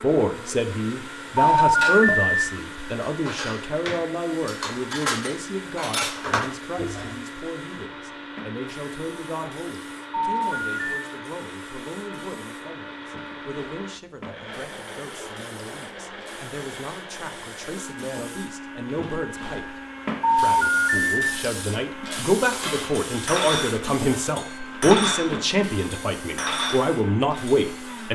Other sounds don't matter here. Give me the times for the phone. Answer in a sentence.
The phone can be heard from 1.4 to 2.5 s, from 10.1 to 11.0 s and from 20.2 to 21.2 s.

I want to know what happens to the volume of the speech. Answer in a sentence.
The volume of the speech goes down, then up.